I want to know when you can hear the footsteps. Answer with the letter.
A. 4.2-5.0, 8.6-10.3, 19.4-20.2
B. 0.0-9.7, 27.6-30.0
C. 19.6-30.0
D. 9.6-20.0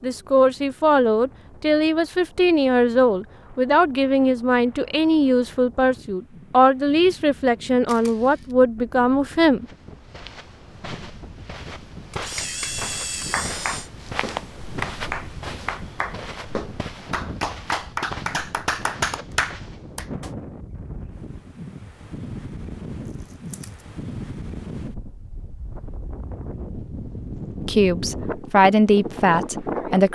D.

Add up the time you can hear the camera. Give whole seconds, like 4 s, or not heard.
3 s.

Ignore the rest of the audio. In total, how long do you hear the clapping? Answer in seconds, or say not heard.
8 s.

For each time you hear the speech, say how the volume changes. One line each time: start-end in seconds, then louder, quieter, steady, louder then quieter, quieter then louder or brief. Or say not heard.
0.0-9.7 steady
27.6-30.0 brief.